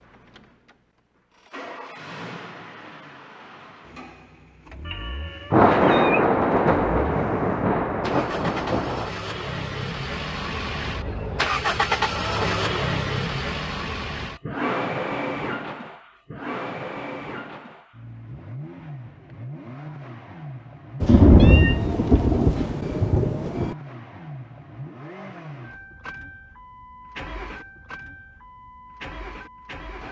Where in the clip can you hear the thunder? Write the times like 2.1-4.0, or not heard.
5.5-9.1, 21.0-23.8.